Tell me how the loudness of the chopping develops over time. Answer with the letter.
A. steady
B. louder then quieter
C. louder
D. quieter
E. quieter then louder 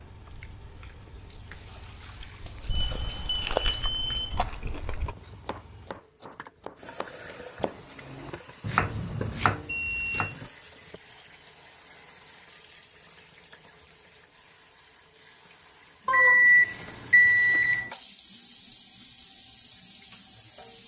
C.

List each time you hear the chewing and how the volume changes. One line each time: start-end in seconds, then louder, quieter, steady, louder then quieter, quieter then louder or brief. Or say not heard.
0.0-5.2 louder then quieter.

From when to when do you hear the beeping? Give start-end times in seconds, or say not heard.
2.9-4.4, 8.6-10.3, 16.1-17.9.